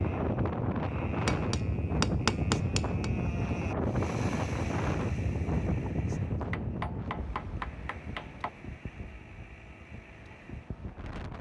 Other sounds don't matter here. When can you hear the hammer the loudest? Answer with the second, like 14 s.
2 s.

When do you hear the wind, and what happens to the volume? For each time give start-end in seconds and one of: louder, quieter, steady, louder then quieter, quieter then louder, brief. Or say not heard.
0.0-11.3 quieter.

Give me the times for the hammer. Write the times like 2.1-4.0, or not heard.
1.2-3.1, 6.5-8.5.